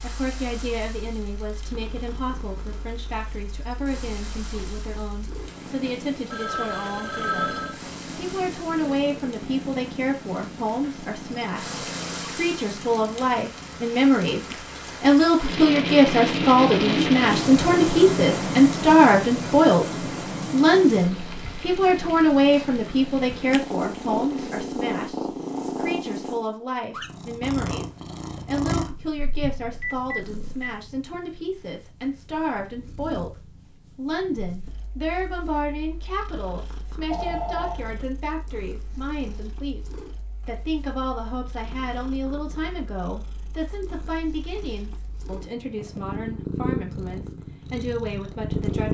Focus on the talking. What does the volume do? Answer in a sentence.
The loudness of the talking goes up, then down.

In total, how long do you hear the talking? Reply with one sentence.
You can hear the talking for 49 seconds altogether.